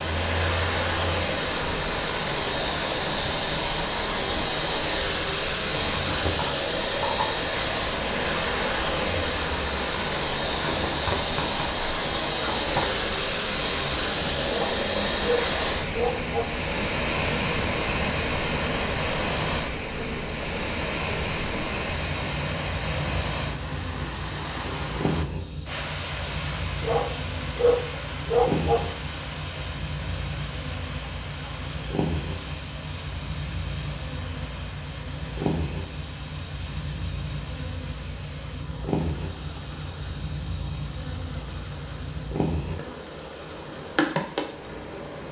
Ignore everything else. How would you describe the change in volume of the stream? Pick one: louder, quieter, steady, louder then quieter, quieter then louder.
quieter.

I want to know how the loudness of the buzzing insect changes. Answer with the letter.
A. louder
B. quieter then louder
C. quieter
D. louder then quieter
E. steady
E.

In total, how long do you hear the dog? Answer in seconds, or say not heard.
4 s.